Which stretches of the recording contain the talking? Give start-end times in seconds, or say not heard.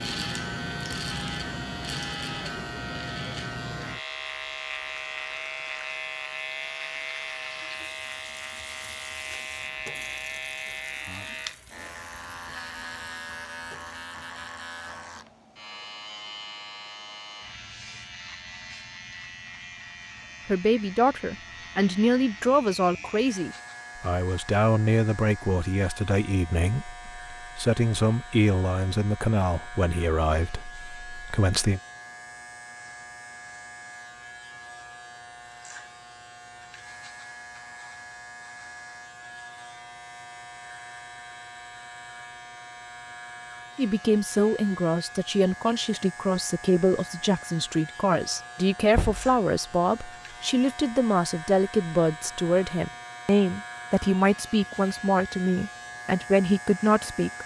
20.4-31.8, 43.8-57.4.